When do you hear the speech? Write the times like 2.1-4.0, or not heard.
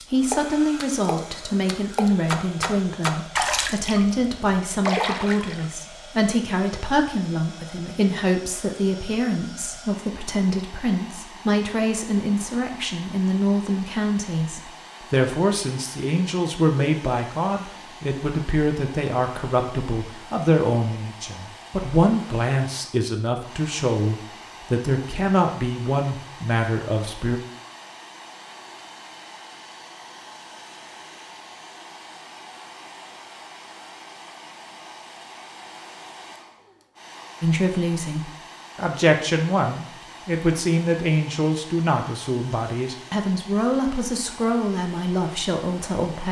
0.1-27.4, 37.4-46.2.